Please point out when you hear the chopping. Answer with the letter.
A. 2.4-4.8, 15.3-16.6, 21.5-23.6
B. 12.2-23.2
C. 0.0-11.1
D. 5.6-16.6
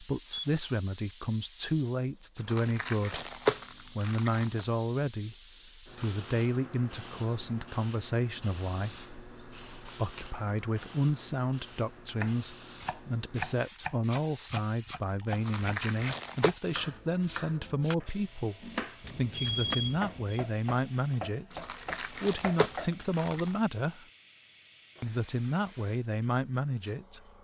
B.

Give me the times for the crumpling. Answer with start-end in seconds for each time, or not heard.
2.4-4.8, 15.3-16.6, 21.5-23.6.